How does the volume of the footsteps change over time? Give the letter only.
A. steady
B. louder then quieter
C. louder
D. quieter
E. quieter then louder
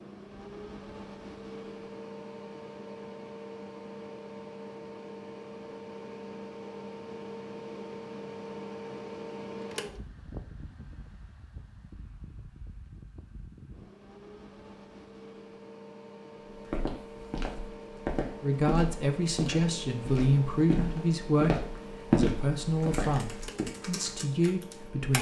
C.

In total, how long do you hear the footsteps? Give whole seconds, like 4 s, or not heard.
7 s.